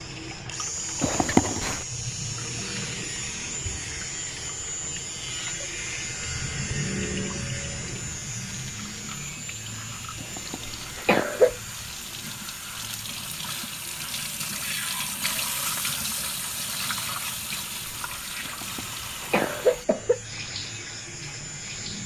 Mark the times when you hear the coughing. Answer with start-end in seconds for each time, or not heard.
1.0-1.8, 10.2-11.6, 18.4-20.2.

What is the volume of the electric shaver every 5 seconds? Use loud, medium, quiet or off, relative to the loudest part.
loud, loud, medium, medium, medium.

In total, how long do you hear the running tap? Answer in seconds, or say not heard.
22 s.